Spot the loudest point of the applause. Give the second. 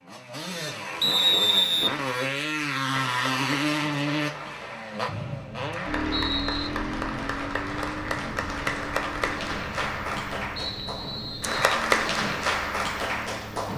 12 s.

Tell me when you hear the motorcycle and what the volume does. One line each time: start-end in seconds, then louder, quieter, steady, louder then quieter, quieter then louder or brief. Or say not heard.
0.0-13.7 quieter.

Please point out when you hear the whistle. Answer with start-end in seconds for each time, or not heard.
1.0-1.9, 5.0-6.7, 10.6-11.8.